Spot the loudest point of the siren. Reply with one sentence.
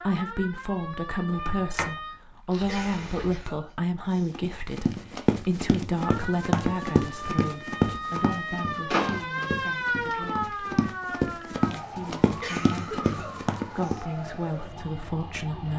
The loudest moment of the siren is at 10 seconds.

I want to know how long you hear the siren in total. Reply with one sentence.
You can hear the siren for 12 seconds altogether.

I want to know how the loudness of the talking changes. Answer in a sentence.
The loudness of the talking goes down, then up.